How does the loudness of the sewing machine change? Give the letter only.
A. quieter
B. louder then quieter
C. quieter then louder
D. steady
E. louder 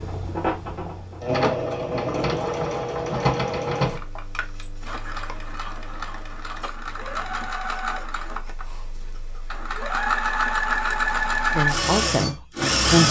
C.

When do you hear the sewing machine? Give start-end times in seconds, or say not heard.
0.0-13.0.